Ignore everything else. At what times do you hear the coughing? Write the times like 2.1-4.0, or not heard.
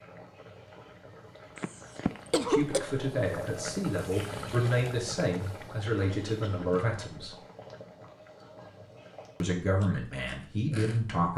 1.6-2.9, 6.0-6.7.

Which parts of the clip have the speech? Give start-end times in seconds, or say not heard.
2.5-7.3, 9.4-11.3.